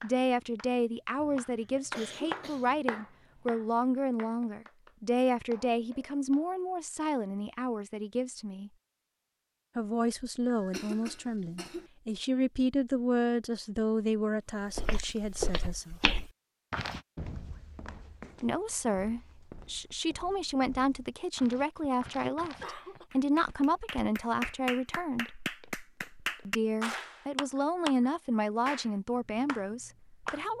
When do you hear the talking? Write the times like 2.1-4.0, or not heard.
0.0-8.7, 9.8-15.9, 18.4-25.3, 26.4-30.5.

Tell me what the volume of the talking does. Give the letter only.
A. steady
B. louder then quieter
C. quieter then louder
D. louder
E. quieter
A.